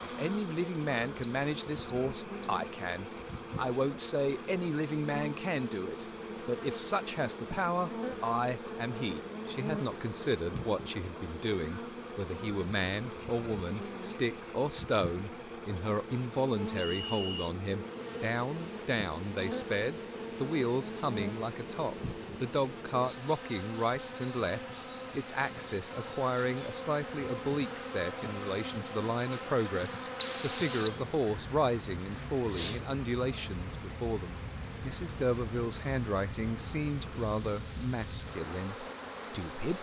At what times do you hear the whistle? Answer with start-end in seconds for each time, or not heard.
1.2-2.7, 16.8-17.5, 30.2-31.0.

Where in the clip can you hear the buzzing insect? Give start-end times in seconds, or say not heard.
0.0-39.7.